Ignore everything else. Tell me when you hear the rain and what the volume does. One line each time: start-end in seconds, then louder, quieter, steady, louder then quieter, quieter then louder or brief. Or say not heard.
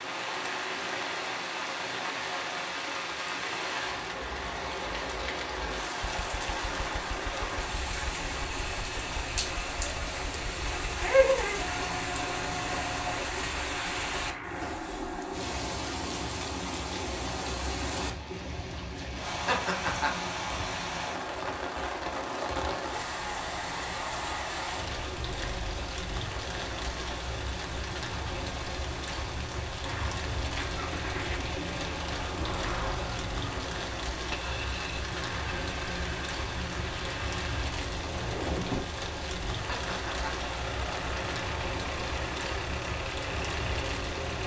0.0-44.4 steady.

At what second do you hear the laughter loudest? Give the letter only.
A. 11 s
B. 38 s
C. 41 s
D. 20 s
A.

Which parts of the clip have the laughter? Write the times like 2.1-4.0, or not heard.
11.0-11.6, 19.4-20.3, 39.6-40.5.